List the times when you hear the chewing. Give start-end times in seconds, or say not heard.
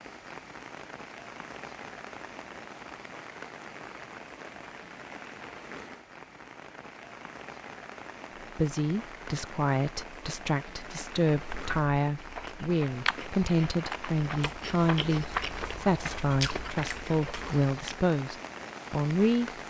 11.3-17.9.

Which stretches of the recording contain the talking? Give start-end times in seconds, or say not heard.
8.6-19.6.